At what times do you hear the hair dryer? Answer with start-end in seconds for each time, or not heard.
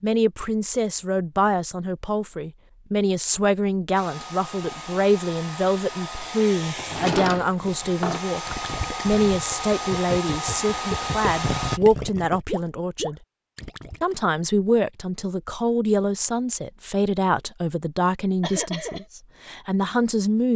4.0-11.8.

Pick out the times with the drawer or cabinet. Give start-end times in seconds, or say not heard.
6.8-8.2.